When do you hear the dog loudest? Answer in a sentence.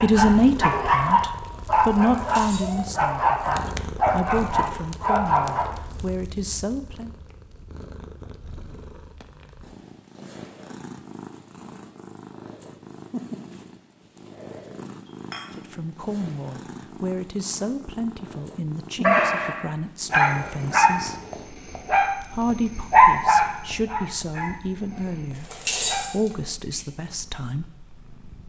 The volume of the dog peaks at 23 seconds.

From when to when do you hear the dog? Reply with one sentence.
The dog can be heard from 0.0 to 5.8 s and from 19.0 to 26.4 s.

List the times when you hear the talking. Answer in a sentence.
You can hear the talking from 0.0 to 7.2 s, from 15.6 to 21.2 s and from 22.3 to 27.7 s.